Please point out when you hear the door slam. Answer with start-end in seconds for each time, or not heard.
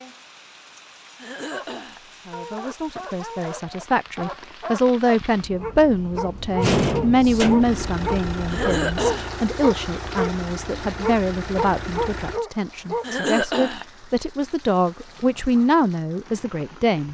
6.6-7.8.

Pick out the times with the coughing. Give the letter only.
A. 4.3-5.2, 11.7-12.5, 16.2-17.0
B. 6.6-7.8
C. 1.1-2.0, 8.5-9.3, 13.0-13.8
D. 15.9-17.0
C.